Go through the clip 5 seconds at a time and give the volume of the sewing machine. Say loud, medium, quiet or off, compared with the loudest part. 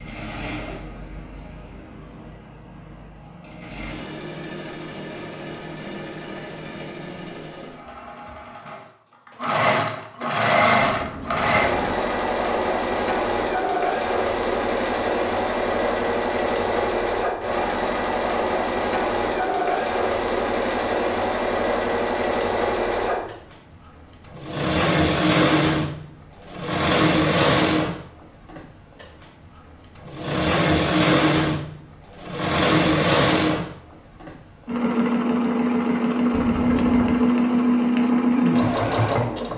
quiet, medium, loud, loud, loud, loud, loud, loud.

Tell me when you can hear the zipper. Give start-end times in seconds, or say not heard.
not heard.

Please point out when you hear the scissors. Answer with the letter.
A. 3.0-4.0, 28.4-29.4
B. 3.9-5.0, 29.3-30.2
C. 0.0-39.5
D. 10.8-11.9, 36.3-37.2
D.